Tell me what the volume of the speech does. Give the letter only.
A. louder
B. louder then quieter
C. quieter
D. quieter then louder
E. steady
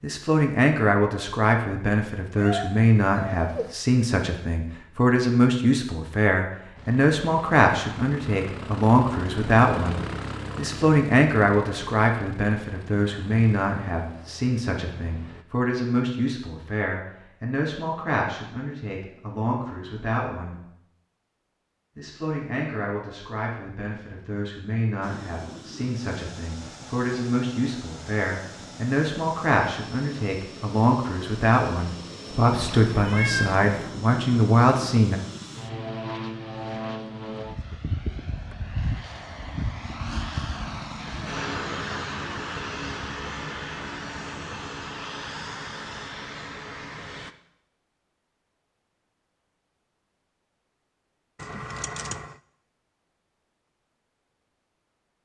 D.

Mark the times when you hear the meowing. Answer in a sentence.
The meowing can be heard from 2.4 to 3.8 s, from 32.5 to 33.8 s and from 51.4 to 52.4 s.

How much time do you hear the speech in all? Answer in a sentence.
The speech can be heard for 34 seconds in total.